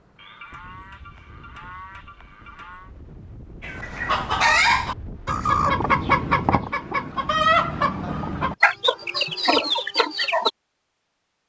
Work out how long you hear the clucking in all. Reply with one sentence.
You can hear the clucking for 7 seconds altogether.